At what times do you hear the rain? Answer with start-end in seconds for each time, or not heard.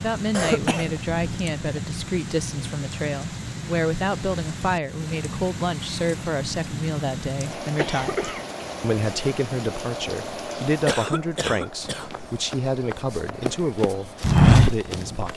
0.0-15.3.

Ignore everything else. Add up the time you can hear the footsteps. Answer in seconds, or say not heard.
3 s.